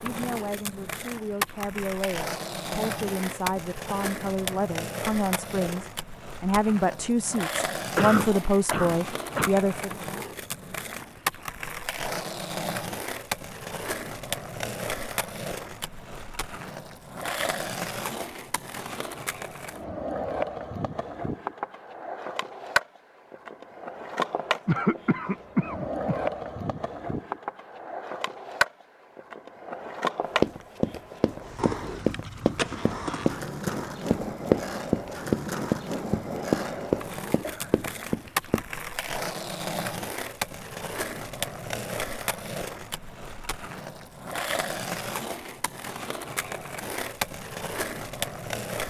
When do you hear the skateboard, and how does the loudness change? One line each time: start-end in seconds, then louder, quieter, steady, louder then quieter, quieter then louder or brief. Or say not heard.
0.0-48.8 steady.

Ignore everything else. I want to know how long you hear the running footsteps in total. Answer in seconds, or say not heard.
8 s.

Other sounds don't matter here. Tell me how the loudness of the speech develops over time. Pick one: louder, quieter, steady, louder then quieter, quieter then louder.
louder.